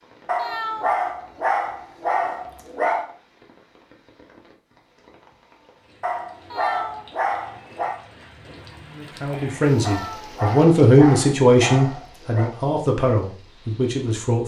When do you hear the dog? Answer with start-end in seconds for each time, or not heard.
0.2-3.0, 6.0-8.0, 9.8-12.6.